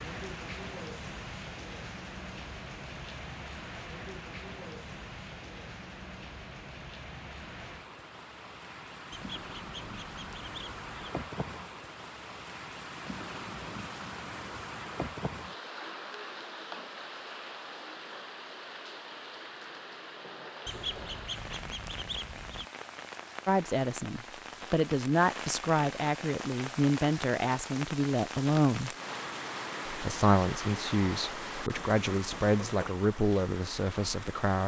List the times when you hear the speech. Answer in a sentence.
You can hear the speech from 23.4 to 28.9 s and from 29.9 to 34.6 s.